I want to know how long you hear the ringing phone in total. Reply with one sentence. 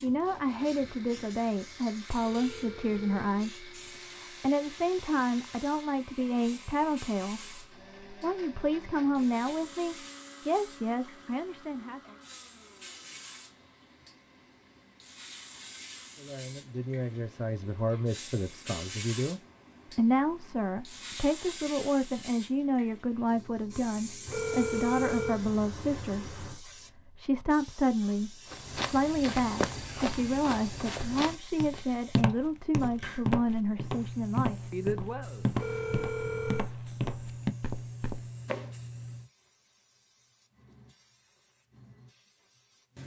You can hear the ringing phone for 5 seconds altogether.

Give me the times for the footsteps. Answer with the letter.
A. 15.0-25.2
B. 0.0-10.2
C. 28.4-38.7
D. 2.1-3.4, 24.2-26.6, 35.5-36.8
C.